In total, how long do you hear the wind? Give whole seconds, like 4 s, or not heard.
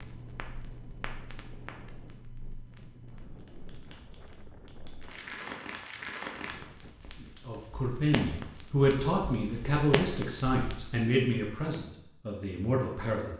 7 s.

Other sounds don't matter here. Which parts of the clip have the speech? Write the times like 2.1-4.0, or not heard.
7.2-13.3.